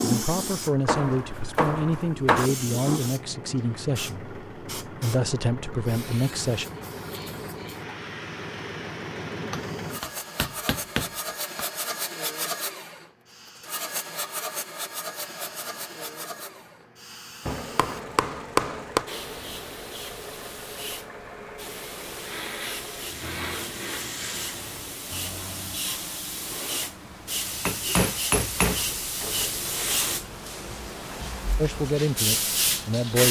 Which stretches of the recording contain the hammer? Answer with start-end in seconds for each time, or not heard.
0.8-2.5, 9.5-11.7, 17.4-19.1, 27.6-29.5.